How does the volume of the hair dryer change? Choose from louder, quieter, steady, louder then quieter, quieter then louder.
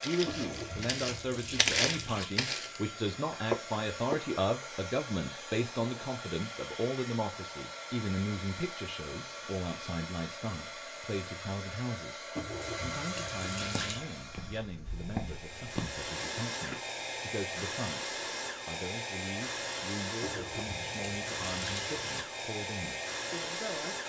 louder.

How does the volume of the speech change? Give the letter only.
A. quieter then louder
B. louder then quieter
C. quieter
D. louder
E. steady
C.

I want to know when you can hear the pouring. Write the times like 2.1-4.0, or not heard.
0.2-2.2, 12.3-14.0, 20.2-22.2.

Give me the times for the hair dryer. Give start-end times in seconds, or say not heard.
0.0-24.0.